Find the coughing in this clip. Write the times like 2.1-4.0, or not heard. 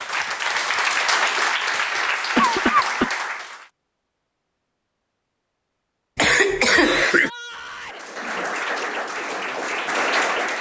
2.4-3.1, 6.2-7.3.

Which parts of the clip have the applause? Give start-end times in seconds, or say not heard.
0.0-3.7, 7.8-10.5.